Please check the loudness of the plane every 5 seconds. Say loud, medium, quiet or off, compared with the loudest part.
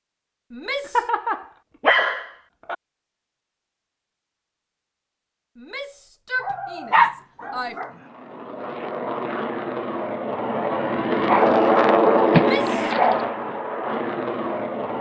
off, medium, loud.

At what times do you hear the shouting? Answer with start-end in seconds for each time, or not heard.
0.5-1.1, 5.5-7.8, 12.3-12.9.